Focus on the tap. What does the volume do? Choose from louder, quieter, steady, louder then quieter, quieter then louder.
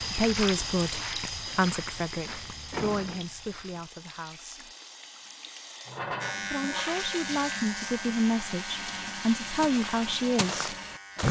quieter then louder.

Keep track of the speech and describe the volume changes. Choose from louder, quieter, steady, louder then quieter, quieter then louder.
quieter then louder.